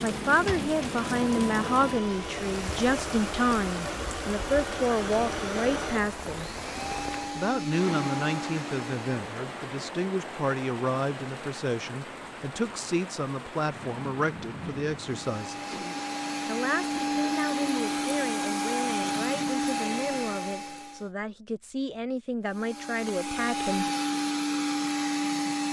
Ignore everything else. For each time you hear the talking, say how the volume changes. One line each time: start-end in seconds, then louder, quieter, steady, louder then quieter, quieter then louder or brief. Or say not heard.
0.0-6.5 steady
7.3-15.8 steady
16.4-23.9 steady.